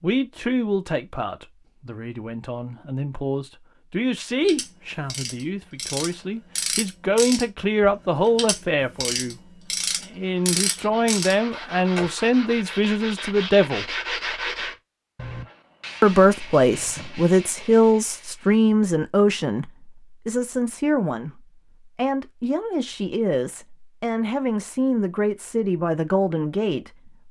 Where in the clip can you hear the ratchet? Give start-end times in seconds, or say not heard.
4.5-12.1.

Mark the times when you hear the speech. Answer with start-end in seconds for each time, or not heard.
0.0-9.3, 10.0-13.8, 16.0-27.2.